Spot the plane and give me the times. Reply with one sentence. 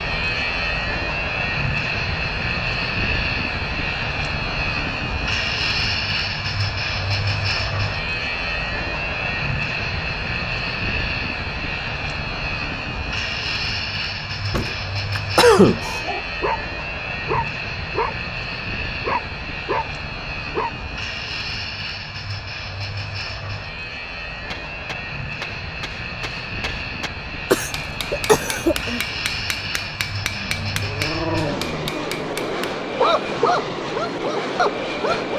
The plane can be heard from 0.0 to 35.3 s.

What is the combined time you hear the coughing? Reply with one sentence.
The coughing can be heard for 3 seconds in total.